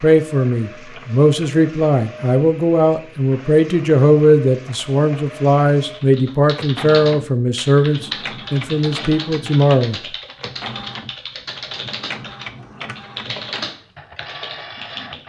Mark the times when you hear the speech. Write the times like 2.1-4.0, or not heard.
0.0-10.0.